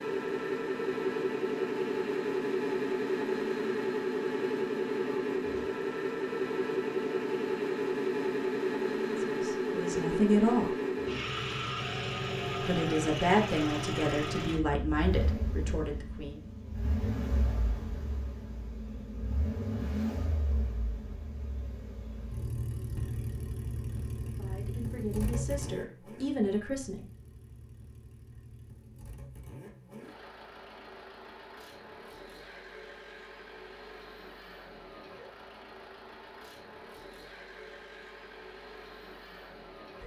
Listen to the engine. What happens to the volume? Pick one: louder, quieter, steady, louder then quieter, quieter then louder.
quieter.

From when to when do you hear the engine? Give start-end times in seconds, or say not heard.
0.0-40.0.